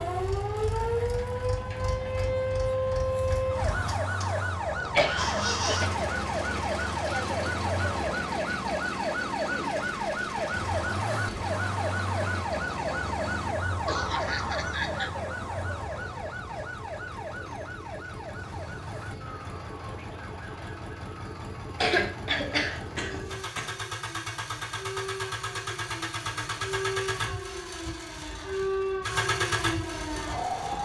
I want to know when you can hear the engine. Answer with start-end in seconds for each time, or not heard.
0.0-30.7.